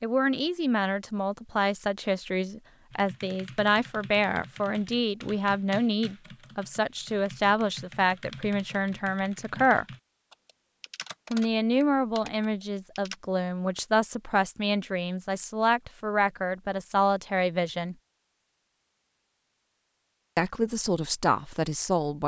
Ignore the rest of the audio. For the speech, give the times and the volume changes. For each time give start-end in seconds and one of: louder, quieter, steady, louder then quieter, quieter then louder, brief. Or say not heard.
0.0-9.8 steady
11.3-17.9 steady
20.4-22.2 brief.